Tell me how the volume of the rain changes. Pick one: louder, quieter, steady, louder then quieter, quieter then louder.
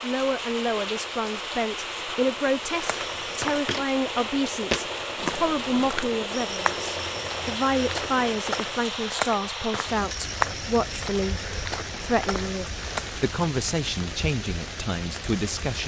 steady.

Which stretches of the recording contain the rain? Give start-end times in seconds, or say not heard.
0.0-15.8.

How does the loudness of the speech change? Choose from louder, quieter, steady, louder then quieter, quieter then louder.
steady.